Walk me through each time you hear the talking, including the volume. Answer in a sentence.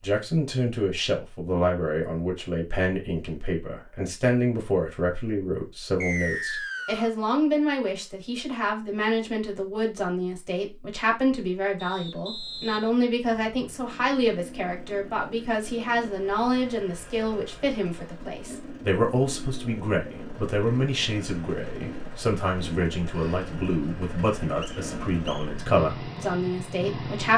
You can hear the talking from 0.0 to 27.3 s, at a steady volume.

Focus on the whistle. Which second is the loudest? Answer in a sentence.
The loudest moment of the whistle is at 6 seconds.